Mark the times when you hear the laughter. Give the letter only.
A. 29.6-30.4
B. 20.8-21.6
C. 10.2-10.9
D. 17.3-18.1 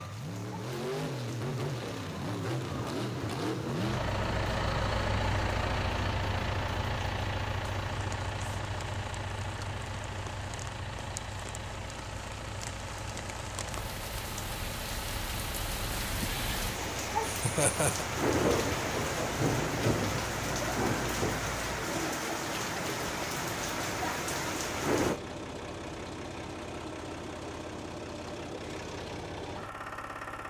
D.